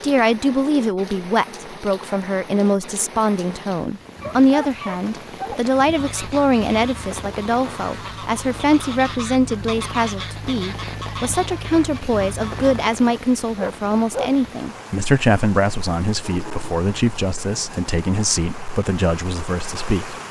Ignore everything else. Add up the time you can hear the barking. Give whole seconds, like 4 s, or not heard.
2 s.